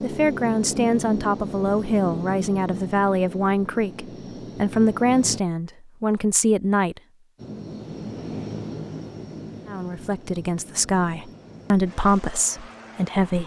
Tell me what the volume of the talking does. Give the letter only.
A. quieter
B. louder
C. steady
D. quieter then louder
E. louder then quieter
C.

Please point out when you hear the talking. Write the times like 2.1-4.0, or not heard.
0.0-7.0, 9.7-13.4.